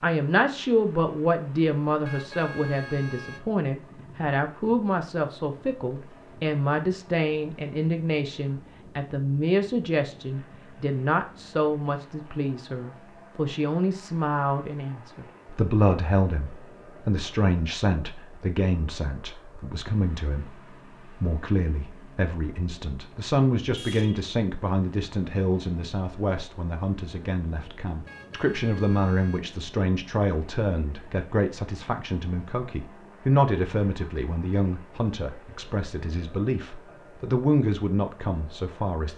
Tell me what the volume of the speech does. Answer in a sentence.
The volume of the speech stays about the same.